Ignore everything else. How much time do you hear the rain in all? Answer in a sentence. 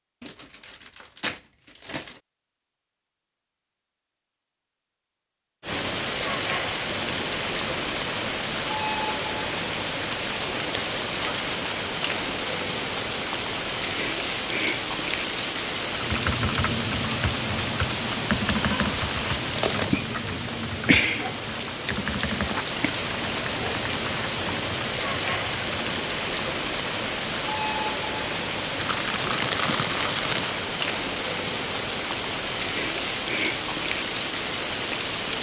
You can hear the rain for 30 seconds altogether.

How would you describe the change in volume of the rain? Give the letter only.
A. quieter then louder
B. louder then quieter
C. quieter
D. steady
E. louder
D.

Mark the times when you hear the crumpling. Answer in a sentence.
You can hear the crumpling from 0.2 to 2.2 s, from 19.6 to 20.1 s and from 28.8 to 30.6 s.